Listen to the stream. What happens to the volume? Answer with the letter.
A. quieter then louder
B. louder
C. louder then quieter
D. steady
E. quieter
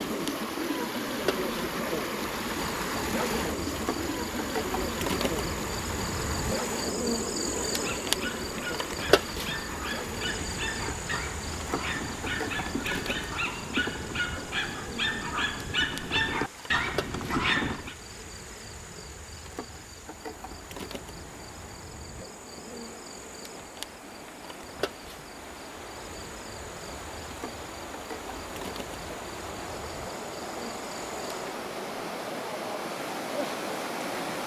A.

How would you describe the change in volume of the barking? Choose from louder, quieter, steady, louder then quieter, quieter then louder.
louder.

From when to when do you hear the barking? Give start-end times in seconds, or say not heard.
7.7-17.9.